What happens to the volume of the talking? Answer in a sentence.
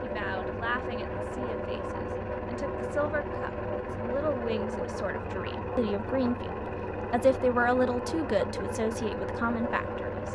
The volume of the talking goes up, then down.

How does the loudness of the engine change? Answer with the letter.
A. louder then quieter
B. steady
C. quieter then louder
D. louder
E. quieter
B.